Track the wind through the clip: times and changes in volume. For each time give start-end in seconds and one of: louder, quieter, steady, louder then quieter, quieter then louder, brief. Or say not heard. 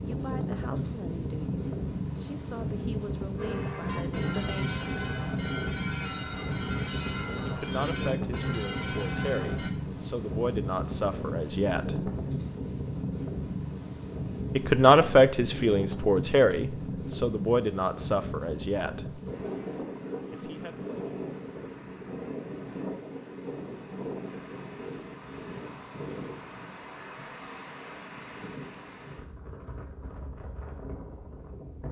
0.0-31.8 quieter.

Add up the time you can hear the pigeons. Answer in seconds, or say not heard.
not heard.